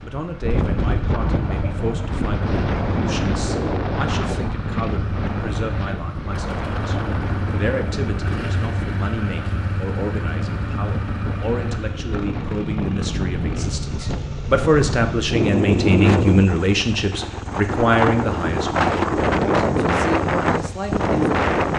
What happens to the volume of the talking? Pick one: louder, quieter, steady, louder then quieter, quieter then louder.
louder.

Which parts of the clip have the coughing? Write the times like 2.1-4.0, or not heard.
not heard.